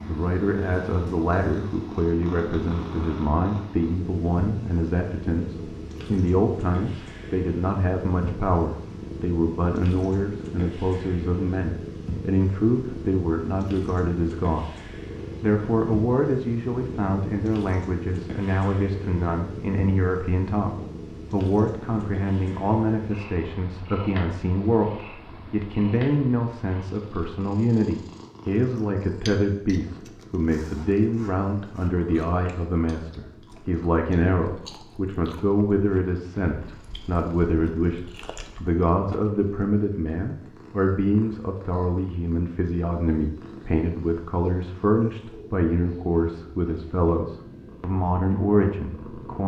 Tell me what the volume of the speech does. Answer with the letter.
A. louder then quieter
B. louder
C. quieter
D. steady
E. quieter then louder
D.